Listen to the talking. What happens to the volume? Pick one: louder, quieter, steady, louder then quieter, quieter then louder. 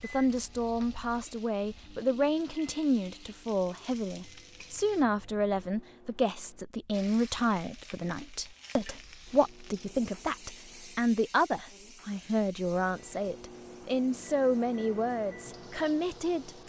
steady.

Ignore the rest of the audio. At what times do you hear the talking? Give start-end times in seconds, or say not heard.
0.0-16.6.